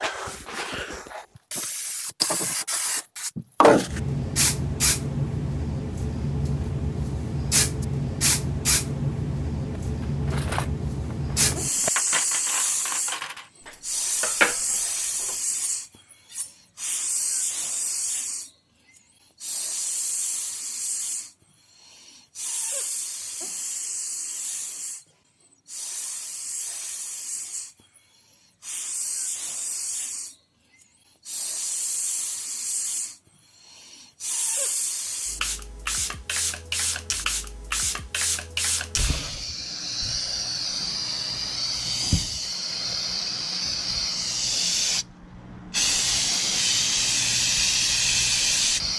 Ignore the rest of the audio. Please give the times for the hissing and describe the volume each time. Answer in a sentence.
You can hear the hissing from 0.0 to 48.9 s, getting quieter then louder.